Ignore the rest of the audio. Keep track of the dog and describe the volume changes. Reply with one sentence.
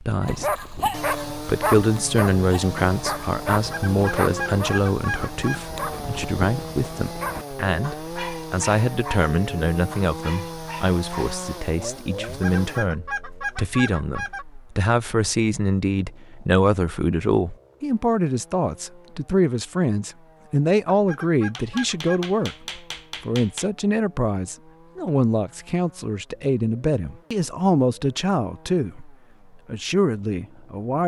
The volume of the dog goes down.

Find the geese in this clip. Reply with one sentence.
The geese can be heard from 3.5 to 5.7 s, from 12.2 to 14.4 s and from 20.9 to 22.5 s.